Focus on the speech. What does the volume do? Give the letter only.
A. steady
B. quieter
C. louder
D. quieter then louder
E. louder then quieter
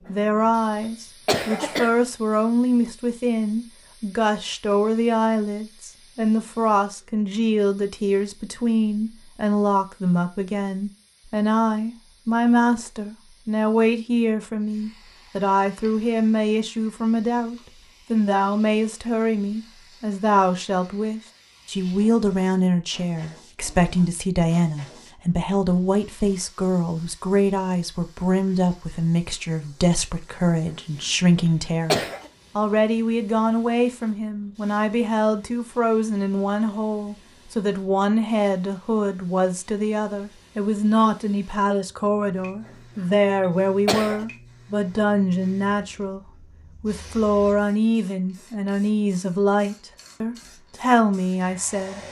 A.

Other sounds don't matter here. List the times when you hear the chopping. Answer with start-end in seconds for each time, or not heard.
not heard.